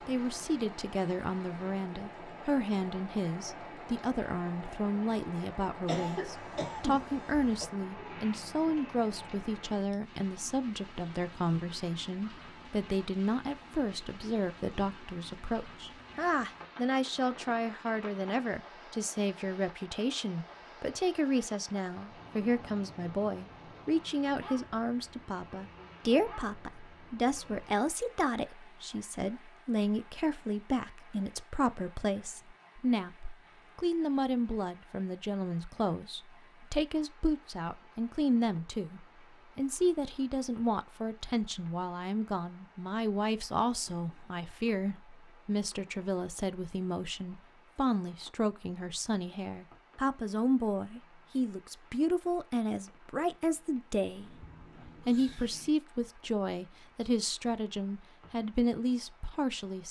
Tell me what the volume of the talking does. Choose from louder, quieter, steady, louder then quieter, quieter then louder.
steady.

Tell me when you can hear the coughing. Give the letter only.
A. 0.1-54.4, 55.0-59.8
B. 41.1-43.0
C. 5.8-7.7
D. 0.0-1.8
C.